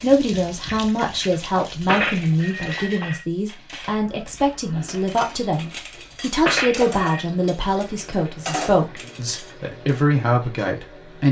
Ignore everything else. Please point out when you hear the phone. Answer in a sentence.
The phone can be heard from 1.9 to 3.2 s and from 6.5 to 7.2 s.